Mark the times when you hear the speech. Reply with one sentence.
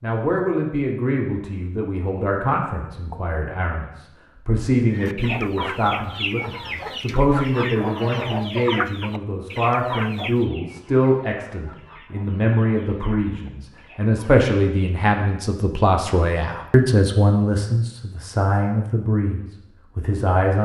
You can hear the speech from 0.0 to 20.6 s.